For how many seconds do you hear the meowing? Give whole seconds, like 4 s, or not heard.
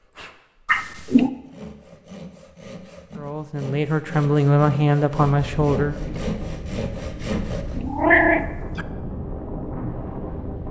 2 s.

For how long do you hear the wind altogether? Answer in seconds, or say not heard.
5 s.